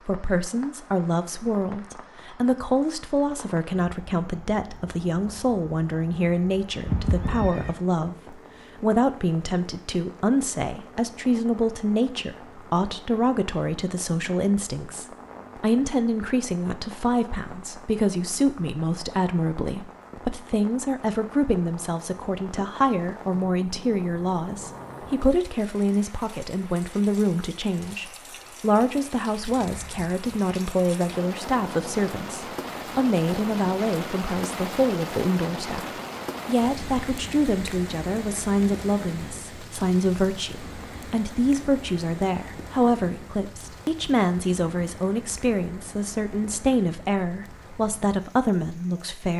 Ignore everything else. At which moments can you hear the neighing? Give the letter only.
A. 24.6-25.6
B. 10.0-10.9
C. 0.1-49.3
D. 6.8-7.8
D.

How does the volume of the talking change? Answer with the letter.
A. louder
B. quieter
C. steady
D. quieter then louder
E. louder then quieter
C.